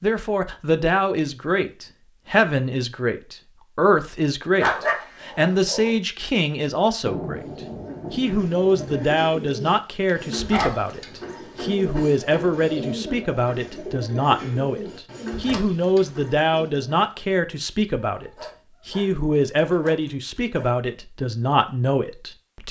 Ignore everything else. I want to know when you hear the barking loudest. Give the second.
5 s.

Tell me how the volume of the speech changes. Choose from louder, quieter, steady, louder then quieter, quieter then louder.
steady.